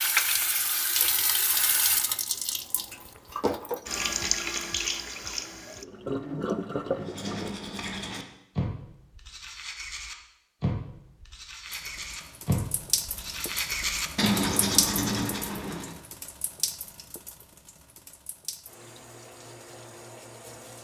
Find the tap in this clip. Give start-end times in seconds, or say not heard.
0.0-7.5, 11.7-20.7.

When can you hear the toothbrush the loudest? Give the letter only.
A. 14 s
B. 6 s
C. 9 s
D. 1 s
A.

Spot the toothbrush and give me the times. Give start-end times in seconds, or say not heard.
7.0-16.0.